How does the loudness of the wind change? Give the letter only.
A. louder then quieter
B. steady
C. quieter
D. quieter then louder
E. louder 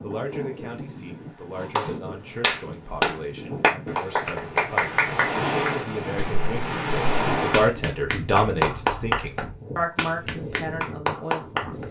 A.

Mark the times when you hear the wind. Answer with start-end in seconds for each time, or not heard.
0.0-11.8.